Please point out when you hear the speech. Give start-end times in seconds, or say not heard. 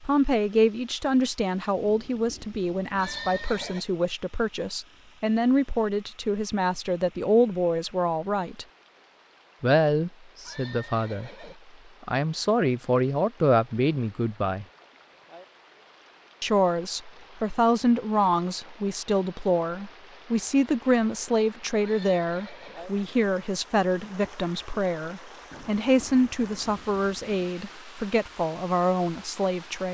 0.0-8.7, 9.6-11.3, 12.1-14.7, 16.4-29.9.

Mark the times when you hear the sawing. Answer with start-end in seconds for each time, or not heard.
not heard.